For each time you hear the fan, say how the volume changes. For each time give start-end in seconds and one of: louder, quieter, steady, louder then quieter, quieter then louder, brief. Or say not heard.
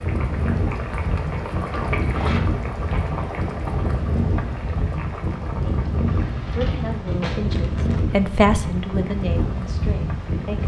0.0-10.6 steady.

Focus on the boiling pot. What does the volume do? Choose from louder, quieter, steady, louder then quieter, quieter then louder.
quieter.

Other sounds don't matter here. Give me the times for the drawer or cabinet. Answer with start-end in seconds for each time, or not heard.
1.7-2.4, 6.0-7.6.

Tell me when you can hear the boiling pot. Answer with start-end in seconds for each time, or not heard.
0.0-10.6.